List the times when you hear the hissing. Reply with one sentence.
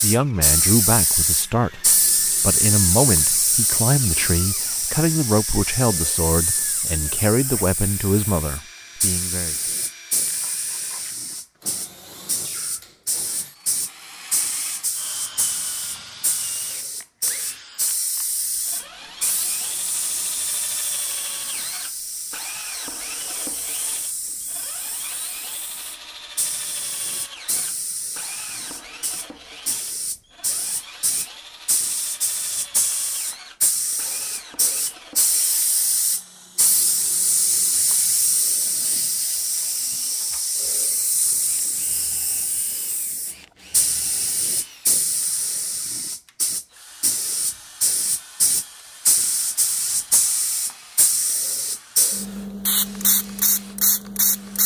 You can hear the hissing from 0.0 to 54.6 s.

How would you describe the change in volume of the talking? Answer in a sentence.
The volume of the talking stays about the same.